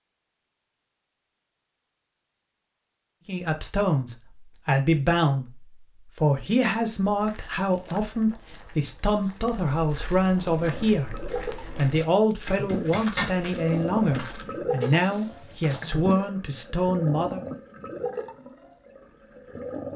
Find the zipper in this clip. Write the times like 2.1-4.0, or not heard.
12.5-13.3.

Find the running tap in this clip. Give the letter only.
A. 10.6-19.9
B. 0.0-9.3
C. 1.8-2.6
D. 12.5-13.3
A.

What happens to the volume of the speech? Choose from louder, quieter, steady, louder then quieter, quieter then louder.
steady.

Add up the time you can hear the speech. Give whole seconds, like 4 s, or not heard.
14 s.